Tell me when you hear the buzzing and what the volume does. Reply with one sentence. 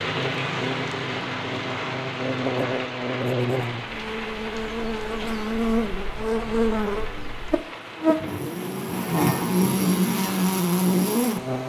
The buzzing can be heard from 0.0 to 11.6 s, getting louder.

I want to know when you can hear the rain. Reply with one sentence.
You can hear the rain from 0.0 to 11.6 s.